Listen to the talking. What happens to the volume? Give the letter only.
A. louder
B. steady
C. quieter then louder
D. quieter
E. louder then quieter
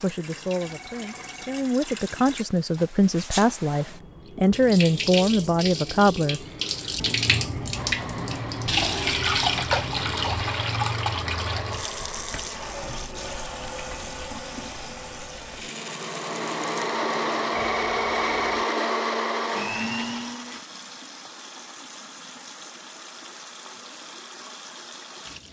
A.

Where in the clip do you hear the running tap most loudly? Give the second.
9 s.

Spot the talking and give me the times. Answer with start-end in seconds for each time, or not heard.
0.0-6.4.